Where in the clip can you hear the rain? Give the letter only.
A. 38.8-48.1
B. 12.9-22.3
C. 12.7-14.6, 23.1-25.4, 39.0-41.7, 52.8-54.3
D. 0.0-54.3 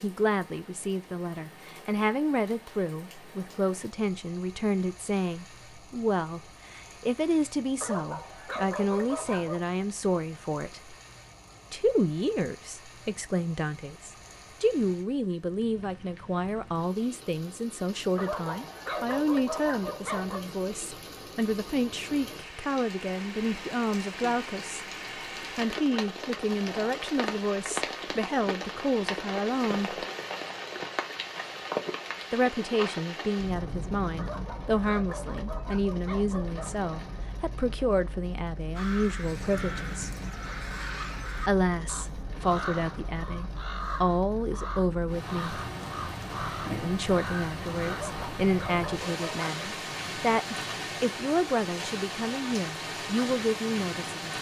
D.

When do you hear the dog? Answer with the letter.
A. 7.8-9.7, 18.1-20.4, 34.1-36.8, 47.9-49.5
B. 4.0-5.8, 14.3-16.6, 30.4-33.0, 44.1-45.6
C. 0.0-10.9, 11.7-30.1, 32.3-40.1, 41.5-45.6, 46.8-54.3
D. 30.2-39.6
A.